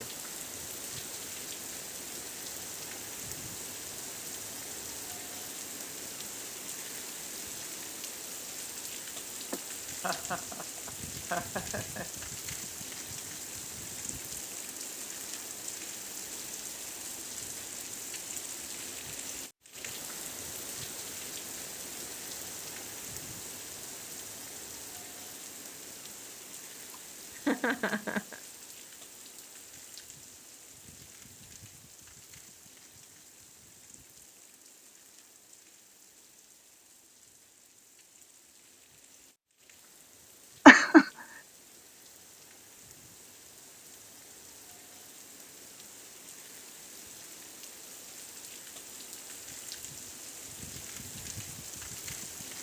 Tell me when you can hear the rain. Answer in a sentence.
You can hear the rain from 0.0 to 52.5 s.